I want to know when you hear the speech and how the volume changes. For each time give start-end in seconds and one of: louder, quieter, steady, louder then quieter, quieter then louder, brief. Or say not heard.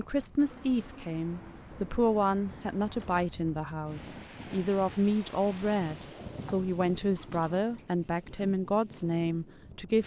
0.0-10.0 steady.